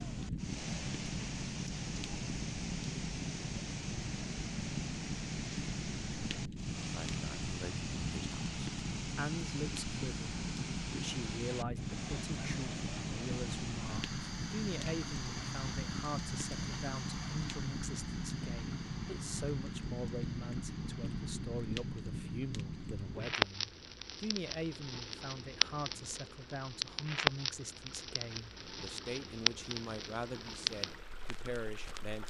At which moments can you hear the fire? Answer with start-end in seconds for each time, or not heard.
0.0-32.2.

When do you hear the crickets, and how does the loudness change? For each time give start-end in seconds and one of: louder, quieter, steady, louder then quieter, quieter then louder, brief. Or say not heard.
not heard.